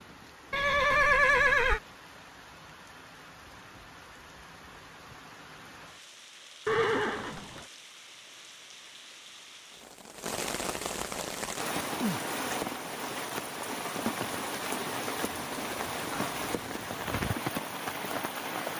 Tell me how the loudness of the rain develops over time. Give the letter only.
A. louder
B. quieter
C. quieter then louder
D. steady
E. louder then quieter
A.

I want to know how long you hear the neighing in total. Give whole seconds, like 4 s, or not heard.
4 s.